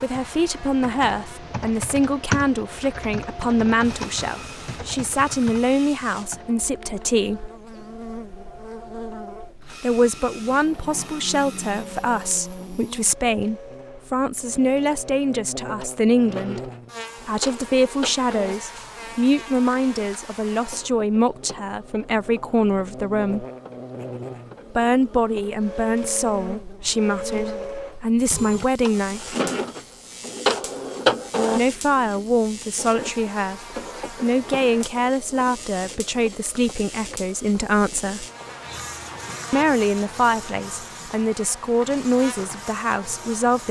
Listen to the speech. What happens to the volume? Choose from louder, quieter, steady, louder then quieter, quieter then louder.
steady.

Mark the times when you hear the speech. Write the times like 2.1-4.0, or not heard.
0.0-7.5, 9.8-23.4, 24.7-29.4, 31.6-38.2, 39.5-43.6.